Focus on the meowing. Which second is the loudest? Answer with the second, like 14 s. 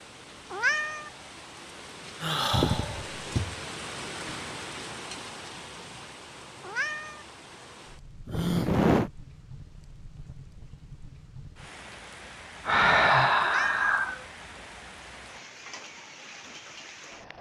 1 s.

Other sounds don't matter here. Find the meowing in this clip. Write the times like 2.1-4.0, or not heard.
0.5-1.1, 6.6-7.2, 13.4-13.9.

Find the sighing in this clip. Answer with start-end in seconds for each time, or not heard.
2.2-3.2, 8.2-9.1, 12.7-14.2.